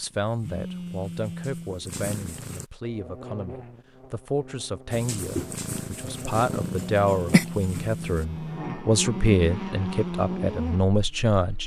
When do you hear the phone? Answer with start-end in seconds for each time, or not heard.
0.4-1.8, 6.5-8.8.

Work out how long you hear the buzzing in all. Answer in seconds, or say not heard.
9 s.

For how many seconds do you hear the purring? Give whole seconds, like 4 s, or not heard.
6 s.